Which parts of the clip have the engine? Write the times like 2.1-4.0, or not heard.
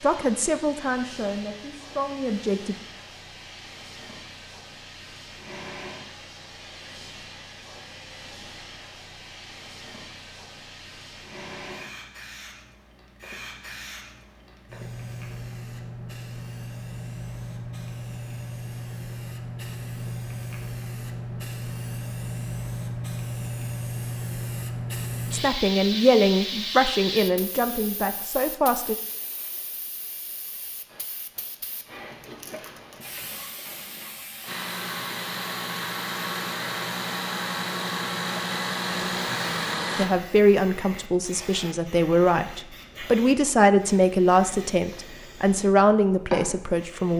34.5-40.1.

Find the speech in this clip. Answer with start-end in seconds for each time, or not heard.
0.0-2.8, 25.3-28.9, 40.0-47.1.